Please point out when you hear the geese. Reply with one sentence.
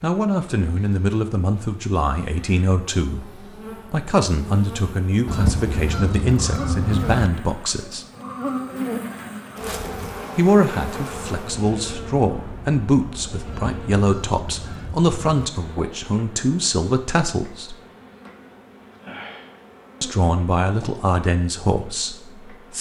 The geese can be heard from 5.2 to 7.3 s and from 13.4 to 15.4 s.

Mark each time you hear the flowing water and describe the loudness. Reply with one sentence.
The flowing water can't be heard in this clip.